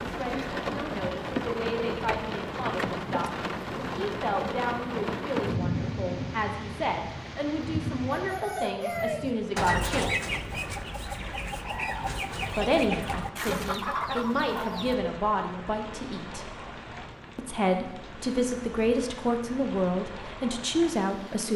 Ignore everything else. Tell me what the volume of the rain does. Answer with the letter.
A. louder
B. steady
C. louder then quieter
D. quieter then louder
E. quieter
E.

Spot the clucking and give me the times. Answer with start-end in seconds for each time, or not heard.
8.2-15.0.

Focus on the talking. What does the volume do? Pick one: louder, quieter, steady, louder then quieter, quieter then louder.
louder.